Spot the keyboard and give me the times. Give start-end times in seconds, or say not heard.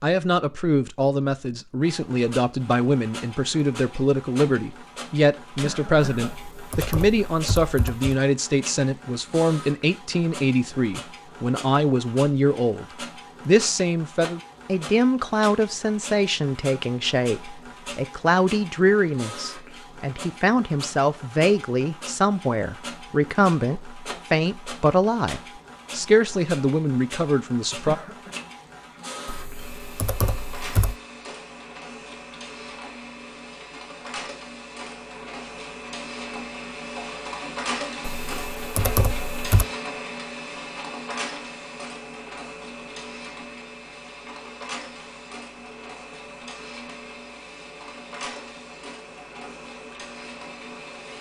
6.2-8.1, 29.2-30.9, 38.0-39.6.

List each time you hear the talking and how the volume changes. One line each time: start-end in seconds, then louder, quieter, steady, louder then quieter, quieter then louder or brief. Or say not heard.
0.0-12.8 steady
13.4-27.9 steady.